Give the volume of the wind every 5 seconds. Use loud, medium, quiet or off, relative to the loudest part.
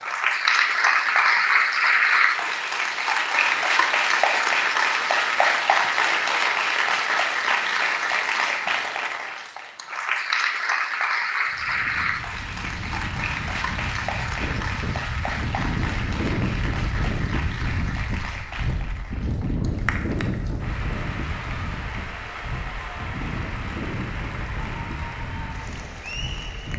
off, off, medium, loud, loud, medium.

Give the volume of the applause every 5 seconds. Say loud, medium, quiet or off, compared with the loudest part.
loud, loud, medium, quiet, quiet, quiet.